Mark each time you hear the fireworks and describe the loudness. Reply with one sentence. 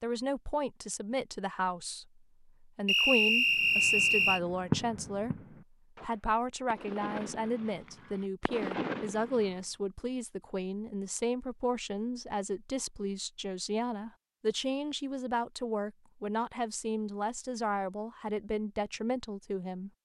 You can hear the fireworks from 3.5 to 9.6 s, getting quieter then louder.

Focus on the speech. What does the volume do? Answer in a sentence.
The volume of the speech stays about the same.